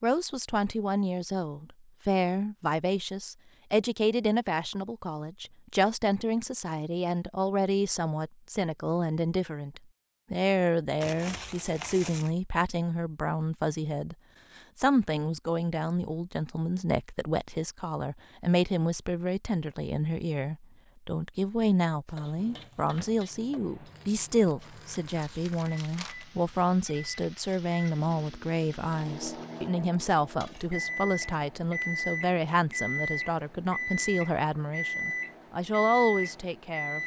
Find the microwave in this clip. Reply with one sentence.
The microwave can be heard from 22.4 to 37.0 s.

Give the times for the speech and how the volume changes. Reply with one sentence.
You can hear the speech from 0.0 to 37.0 s, at a steady volume.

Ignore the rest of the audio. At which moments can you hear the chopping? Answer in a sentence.
You can't hear the chopping here.